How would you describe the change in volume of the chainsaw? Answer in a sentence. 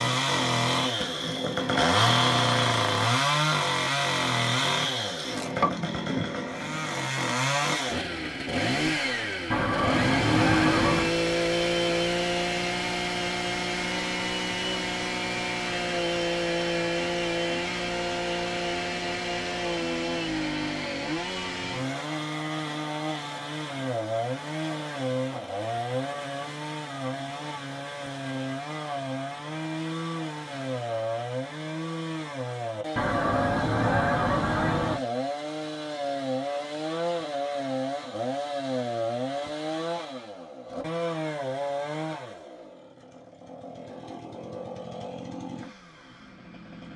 The volume of the chainsaw goes down.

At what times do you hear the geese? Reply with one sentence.
The geese can be heard from 9.5 to 11.2 s and from 33.0 to 35.0 s.